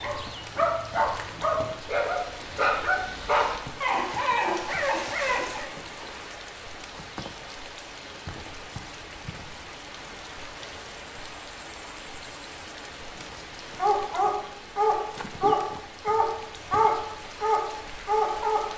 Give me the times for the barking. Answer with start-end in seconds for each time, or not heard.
0.0-5.7, 13.7-18.7.